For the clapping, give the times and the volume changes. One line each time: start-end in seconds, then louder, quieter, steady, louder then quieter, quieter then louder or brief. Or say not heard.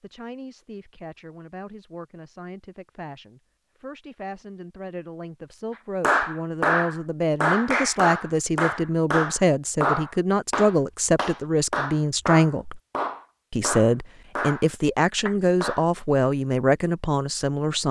6.0-15.8 quieter.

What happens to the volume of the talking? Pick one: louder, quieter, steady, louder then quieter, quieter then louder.
louder.